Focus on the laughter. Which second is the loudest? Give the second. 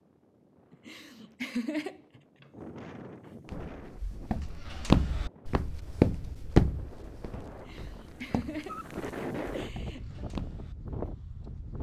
2 s.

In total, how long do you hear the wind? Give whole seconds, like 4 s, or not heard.
12 s.